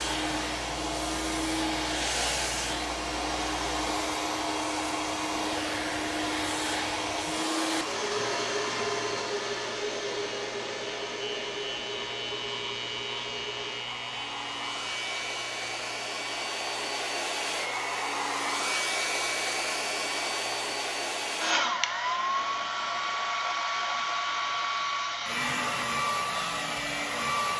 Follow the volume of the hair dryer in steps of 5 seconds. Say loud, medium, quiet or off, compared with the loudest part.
loud, loud, medium, loud, loud, loud.